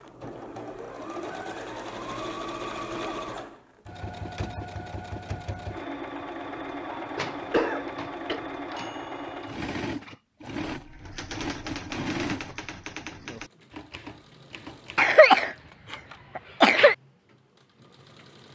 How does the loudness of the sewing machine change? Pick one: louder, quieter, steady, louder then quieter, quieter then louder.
quieter.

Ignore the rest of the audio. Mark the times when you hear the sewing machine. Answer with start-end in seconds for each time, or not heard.
0.0-18.5.